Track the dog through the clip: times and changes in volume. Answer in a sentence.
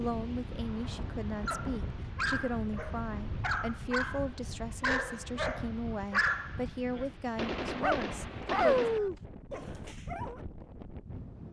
The dog can be heard from 1.4 to 10.4 s, getting louder.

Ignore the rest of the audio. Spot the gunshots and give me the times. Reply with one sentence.
You can hear the gunshots from 7.3 to 9.1 s.